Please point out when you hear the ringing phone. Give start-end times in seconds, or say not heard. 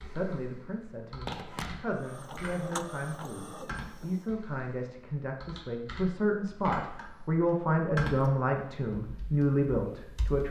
1.2-1.9.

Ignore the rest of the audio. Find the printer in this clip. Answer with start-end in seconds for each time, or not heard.
1.9-4.3.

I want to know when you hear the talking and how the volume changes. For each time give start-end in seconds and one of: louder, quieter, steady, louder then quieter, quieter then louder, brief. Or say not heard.
0.0-10.4 louder.